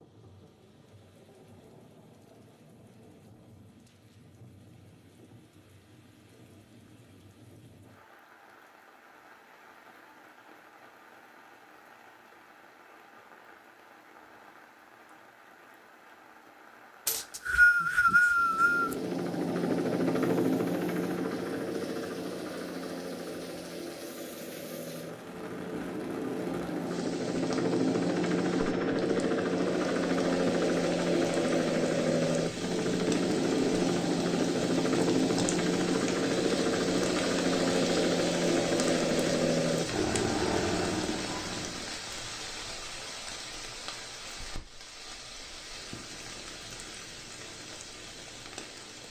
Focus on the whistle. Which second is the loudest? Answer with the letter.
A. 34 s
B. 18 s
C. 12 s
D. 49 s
B.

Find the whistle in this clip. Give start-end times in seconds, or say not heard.
17.1-18.9.